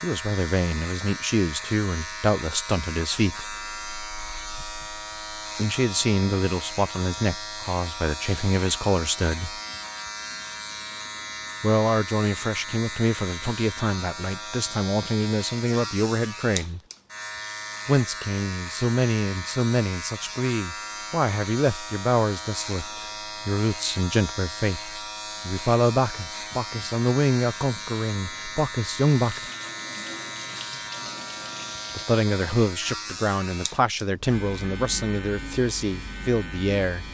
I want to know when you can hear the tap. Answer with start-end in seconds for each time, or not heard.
29.2-32.0.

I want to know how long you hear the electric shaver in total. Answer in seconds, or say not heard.
37 s.